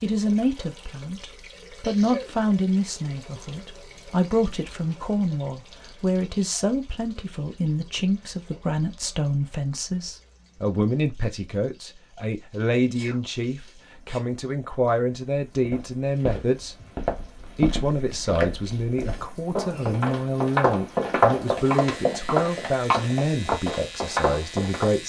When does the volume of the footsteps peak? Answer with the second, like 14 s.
21 s.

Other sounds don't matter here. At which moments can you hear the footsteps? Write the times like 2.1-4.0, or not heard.
15.7-24.9.